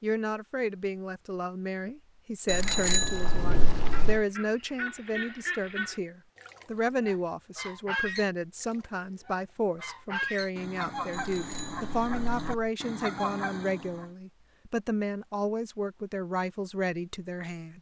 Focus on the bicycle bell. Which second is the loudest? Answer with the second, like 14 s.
3 s.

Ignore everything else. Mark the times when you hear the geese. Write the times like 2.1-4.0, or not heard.
3.7-14.1.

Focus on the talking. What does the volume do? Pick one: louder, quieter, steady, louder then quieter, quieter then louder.
steady.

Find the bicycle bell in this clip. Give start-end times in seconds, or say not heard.
2.5-4.2, 11.1-12.7.